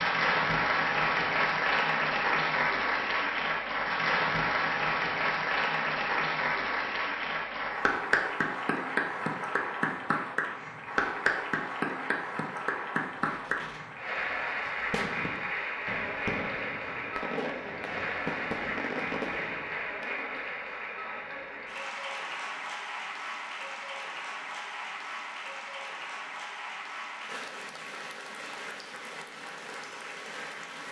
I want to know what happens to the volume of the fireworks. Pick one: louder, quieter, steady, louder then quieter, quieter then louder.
louder.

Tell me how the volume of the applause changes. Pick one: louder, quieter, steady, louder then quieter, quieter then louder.
quieter.